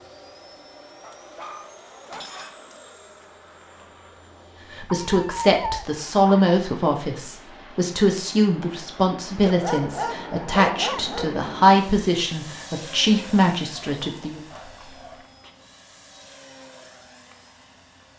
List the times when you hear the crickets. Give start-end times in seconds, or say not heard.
not heard.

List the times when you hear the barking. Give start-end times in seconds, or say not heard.
1.0-2.8, 4.8-6.3, 9.4-11.3, 13.7-15.3.